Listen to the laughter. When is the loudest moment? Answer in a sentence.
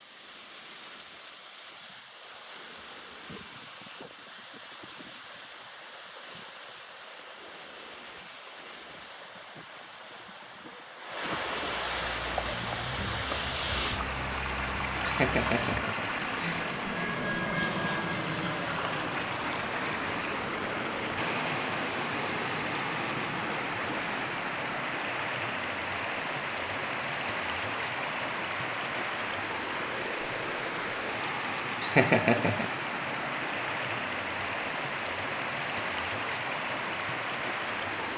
The loudest moment of the laughter is at 32 seconds.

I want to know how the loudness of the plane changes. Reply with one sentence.
The volume of the plane goes up, then down.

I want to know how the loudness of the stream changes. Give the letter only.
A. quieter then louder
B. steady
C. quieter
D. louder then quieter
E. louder
E.